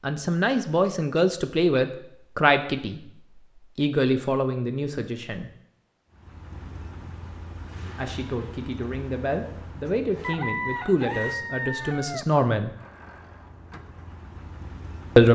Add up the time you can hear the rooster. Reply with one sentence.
You can hear the rooster for 2 seconds altogether.